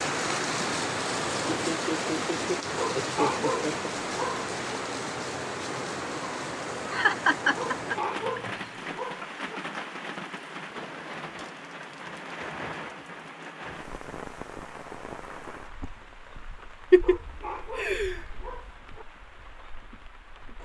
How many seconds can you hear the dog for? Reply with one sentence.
The dog can be heard for 6 seconds in total.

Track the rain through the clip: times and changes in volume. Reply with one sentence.
You can hear the rain from 0.0 to 20.5 s, getting quieter.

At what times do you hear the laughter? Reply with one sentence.
The laughter can be heard from 1.5 to 3.9 s, from 6.9 to 8.5 s and from 16.9 to 18.4 s.